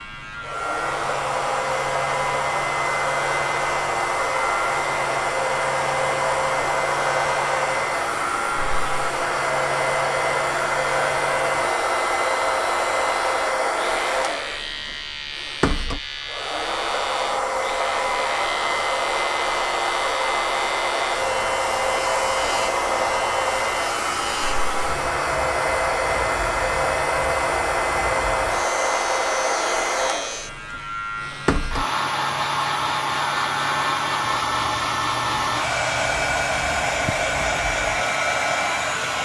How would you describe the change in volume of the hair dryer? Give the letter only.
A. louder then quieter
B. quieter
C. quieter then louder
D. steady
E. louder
D.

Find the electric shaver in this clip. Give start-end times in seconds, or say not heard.
0.0-39.2.